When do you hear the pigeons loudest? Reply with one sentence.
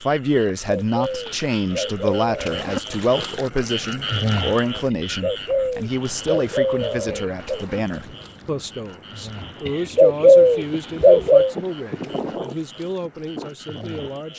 The volume of the pigeons peaks at 10 seconds.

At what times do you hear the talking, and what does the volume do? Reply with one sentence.
The talking can be heard from 0.0 to 14.3 s, getting quieter.